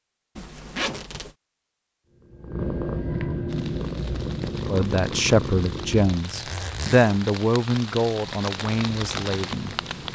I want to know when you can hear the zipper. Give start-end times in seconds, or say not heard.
0.3-1.4, 6.1-7.3.